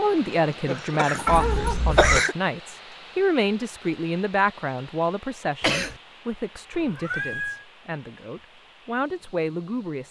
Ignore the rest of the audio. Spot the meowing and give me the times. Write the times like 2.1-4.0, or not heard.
1.2-2.2, 6.7-7.7.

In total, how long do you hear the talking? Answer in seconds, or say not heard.
10 s.